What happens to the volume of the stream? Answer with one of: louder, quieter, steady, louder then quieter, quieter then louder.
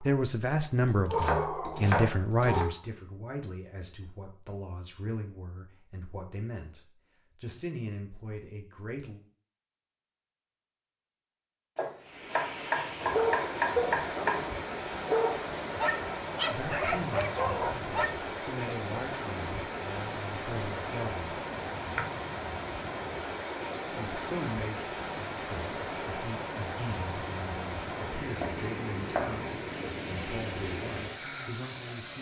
steady.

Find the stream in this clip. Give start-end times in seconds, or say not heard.
11.9-32.1.